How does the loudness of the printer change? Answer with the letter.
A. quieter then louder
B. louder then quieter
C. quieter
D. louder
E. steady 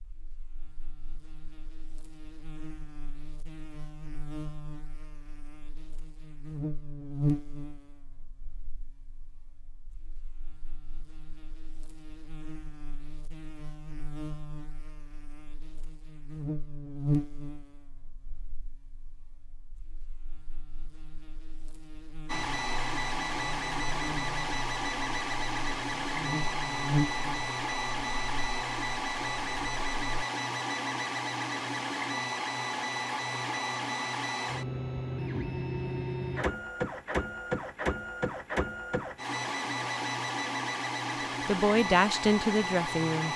E.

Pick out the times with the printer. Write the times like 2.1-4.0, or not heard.
22.2-43.3.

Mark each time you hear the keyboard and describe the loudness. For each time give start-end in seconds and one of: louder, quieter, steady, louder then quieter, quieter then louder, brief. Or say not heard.
not heard.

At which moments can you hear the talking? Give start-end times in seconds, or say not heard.
41.5-43.3.